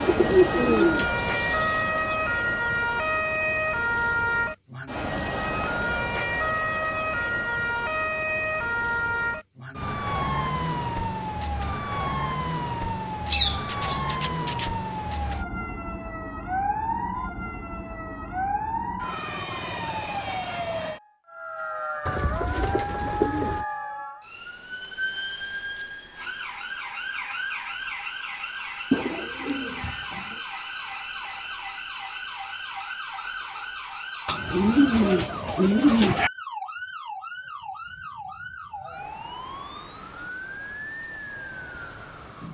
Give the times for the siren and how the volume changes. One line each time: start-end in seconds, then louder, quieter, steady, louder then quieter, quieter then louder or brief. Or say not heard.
0.0-42.4 quieter.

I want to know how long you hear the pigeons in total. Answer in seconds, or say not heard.
9 s.